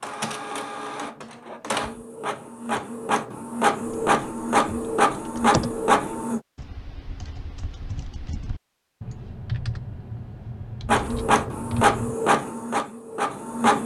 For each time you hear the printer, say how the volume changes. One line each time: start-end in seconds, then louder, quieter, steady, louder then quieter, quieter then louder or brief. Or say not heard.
0.0-6.4 louder
10.8-13.8 brief.